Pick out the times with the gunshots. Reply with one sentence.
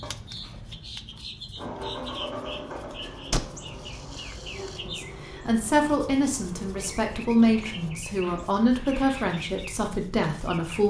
You can hear the gunshots from 3.3 to 4.8 s.